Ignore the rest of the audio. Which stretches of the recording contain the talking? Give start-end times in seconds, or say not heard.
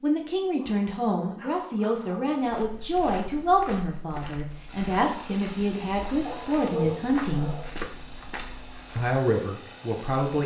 0.0-7.5, 8.9-10.4.